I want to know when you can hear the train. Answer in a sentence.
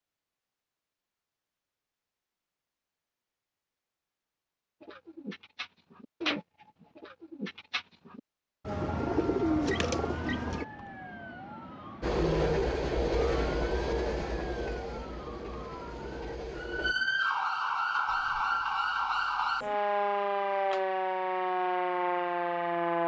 The train can be heard from 12.0 to 16.9 s.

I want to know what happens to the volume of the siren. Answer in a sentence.
The volume of the siren goes up.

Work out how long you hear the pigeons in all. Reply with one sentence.
You can hear the pigeons for 6 seconds altogether.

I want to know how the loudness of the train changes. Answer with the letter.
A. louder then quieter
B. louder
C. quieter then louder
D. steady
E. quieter
E.